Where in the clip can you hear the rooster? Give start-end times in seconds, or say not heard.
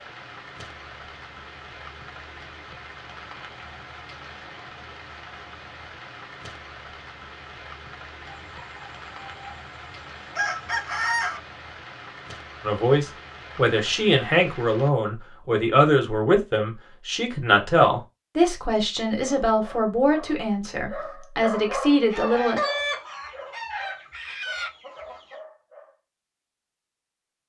8.2-11.4, 22.1-25.4.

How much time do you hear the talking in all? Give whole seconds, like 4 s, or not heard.
10 s.